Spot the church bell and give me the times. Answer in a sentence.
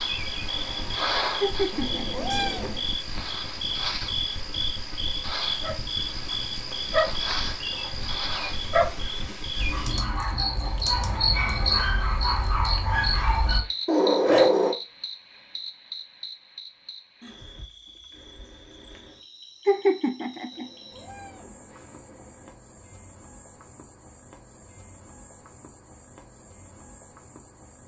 The church bell can't be heard in this clip.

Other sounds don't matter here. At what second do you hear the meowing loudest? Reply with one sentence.
The volume of the meowing peaks at 2 seconds.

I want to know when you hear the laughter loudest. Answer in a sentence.
The loudest moment of the laughter is at 20 seconds.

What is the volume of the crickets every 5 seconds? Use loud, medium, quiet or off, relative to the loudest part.
loud, loud, loud, quiet, quiet, quiet.